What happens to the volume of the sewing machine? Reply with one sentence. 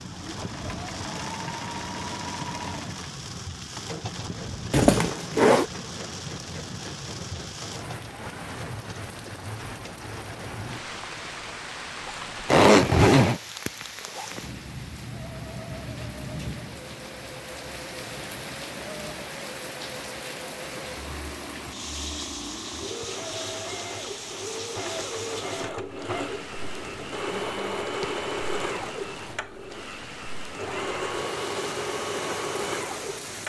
The loudness of the sewing machine goes down, then up.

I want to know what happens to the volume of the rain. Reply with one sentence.
The loudness of the rain stays about the same.